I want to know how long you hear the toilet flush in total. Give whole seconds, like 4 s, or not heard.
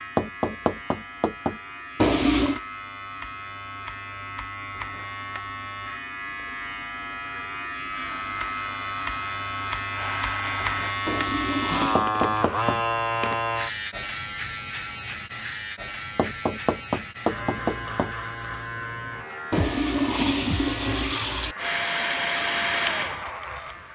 4 s.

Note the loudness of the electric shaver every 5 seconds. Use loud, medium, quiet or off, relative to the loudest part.
medium, medium, loud, medium, medium.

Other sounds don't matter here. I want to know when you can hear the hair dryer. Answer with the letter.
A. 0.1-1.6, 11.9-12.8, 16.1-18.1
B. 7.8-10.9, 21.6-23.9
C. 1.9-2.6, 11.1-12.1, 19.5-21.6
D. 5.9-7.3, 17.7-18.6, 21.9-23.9
B.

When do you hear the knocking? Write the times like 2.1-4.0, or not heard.
0.1-1.6, 11.9-12.8, 16.1-18.1.